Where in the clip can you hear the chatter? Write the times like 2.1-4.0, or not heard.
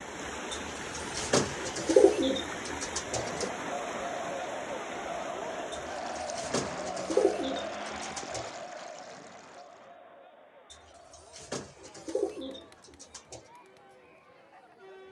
3.0-15.0.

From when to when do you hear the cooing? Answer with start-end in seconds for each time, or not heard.
0.5-3.5, 5.7-8.5, 10.7-13.4.